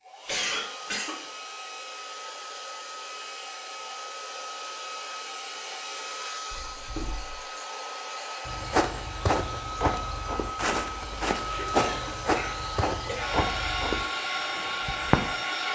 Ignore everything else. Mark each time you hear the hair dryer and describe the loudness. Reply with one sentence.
The hair dryer can be heard from 0.0 to 15.6 s, getting louder.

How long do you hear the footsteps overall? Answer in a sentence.
The footsteps can be heard for 7 seconds in total.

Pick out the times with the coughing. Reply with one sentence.
The coughing can be heard from 0.2 to 1.2 s, from 6.5 to 7.4 s and from 11.5 to 13.4 s.